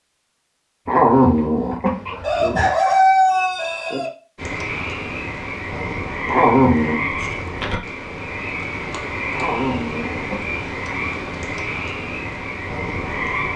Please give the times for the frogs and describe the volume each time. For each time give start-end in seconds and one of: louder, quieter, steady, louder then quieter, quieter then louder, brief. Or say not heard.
4.3-13.5 steady.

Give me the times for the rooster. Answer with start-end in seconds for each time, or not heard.
2.2-4.1.